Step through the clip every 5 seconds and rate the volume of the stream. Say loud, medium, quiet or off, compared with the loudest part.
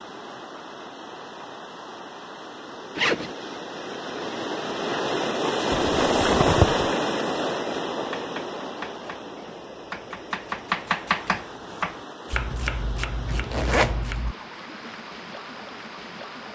medium, loud, quiet, quiet.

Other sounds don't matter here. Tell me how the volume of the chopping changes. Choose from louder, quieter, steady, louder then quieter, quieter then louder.
louder then quieter.